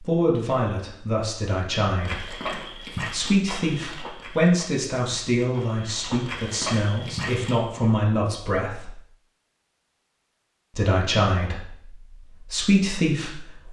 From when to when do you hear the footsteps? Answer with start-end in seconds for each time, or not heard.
2.0-7.5.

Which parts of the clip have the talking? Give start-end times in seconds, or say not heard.
0.0-8.9, 10.8-13.6.